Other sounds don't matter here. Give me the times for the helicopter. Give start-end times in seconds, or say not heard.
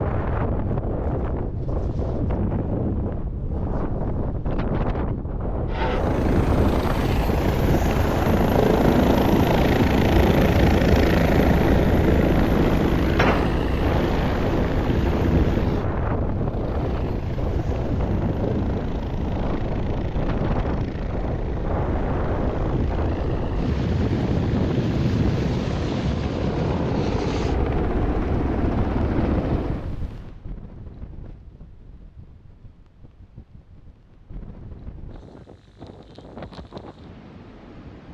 5.7-29.9.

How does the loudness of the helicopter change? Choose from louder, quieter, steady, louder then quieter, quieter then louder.
quieter then louder.